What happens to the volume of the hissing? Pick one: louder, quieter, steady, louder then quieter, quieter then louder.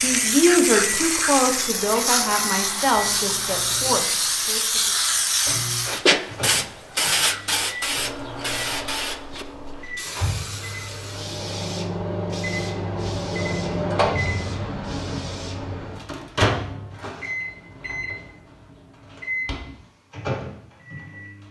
quieter.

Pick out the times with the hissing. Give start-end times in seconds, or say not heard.
0.0-15.8.